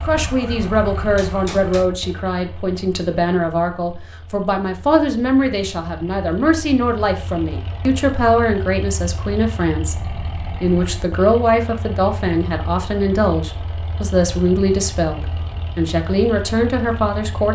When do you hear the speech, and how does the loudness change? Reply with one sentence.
You can hear the speech from 0.0 to 17.5 s, at a steady volume.